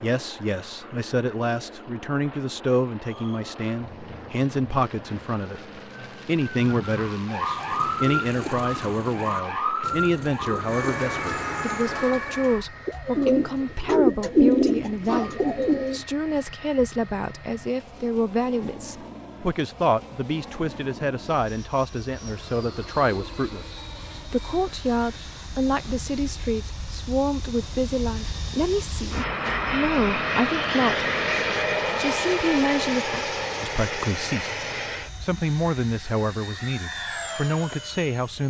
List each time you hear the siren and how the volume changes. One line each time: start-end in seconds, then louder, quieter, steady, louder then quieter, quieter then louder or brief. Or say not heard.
3.0-12.7 louder.